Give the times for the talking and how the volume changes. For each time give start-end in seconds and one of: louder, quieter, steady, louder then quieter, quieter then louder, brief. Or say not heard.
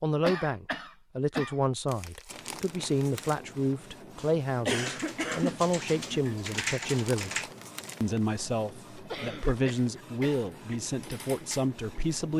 0.0-12.3 steady.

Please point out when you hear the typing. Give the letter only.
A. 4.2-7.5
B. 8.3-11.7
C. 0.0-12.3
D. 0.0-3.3
A.